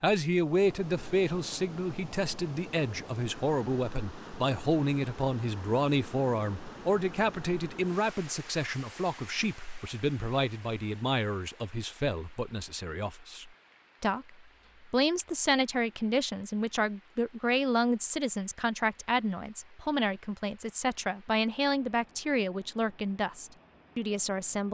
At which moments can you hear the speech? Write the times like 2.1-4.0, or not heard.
0.0-24.6.